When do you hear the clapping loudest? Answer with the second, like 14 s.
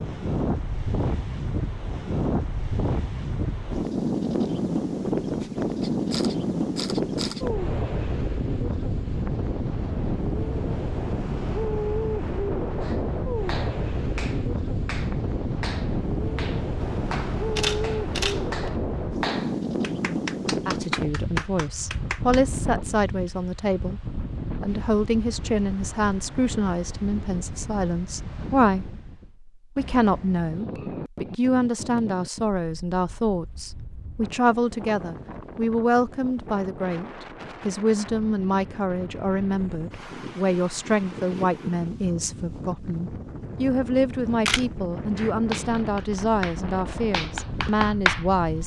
48 s.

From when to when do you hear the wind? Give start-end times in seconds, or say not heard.
0.0-48.6.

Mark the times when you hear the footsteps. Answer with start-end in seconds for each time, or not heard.
not heard.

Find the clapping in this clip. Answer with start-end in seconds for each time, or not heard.
12.8-22.4, 45.1-48.6.